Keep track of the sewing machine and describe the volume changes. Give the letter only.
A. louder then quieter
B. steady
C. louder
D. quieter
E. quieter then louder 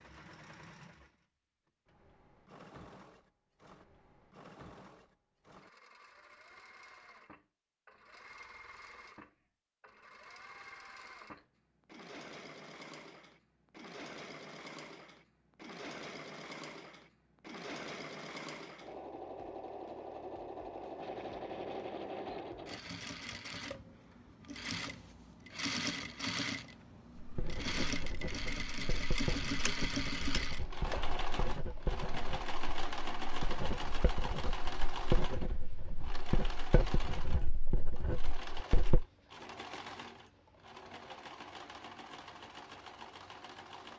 A.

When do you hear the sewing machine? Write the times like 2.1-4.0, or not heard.
0.0-43.9.